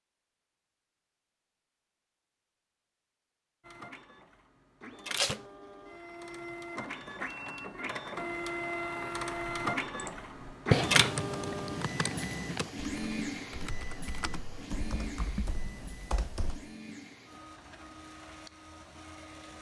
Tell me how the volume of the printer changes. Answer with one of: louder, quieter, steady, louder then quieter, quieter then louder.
louder then quieter.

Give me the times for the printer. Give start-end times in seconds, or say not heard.
3.6-19.5.